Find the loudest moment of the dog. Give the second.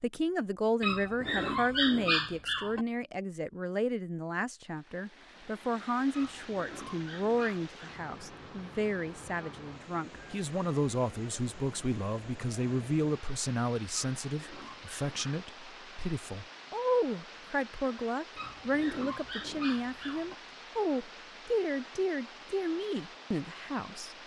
2 s.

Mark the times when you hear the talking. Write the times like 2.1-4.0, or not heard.
0.0-24.1.